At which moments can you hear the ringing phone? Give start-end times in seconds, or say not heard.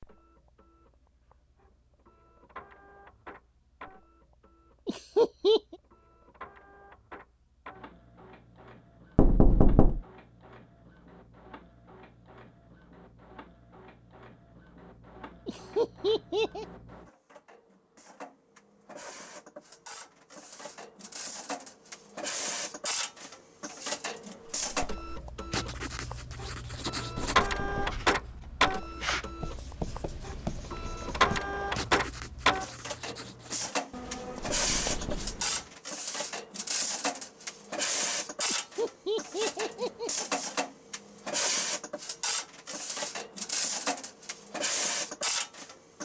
not heard.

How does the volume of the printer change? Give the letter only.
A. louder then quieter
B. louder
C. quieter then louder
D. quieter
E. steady
B.